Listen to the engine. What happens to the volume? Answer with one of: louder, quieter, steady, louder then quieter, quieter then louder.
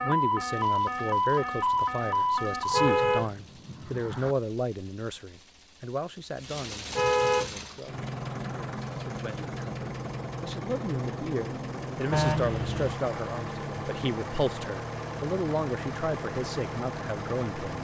louder.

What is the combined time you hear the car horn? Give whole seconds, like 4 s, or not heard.
3 s.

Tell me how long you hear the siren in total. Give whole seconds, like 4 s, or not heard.
3 s.